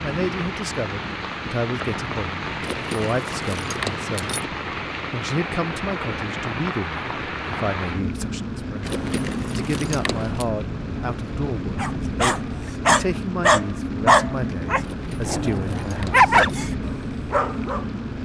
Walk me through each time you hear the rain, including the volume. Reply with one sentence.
The rain can be heard from 0.0 to 18.2 s, at a steady volume.